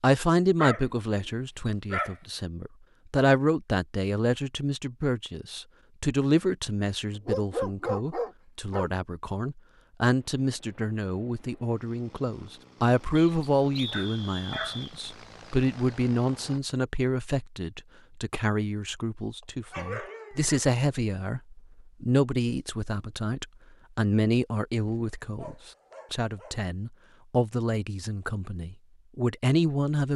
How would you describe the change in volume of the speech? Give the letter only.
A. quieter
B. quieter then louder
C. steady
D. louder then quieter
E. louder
C.